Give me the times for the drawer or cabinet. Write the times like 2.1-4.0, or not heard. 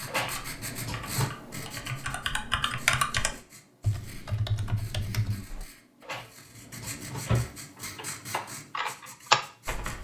0.1-1.4, 6.0-7.5.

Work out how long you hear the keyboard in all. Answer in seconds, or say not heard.
8 s.